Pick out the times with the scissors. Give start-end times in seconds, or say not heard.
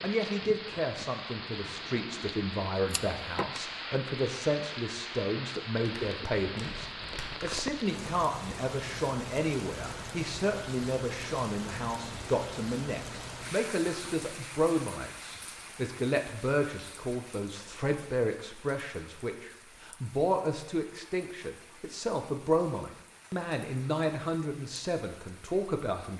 2.9-3.6.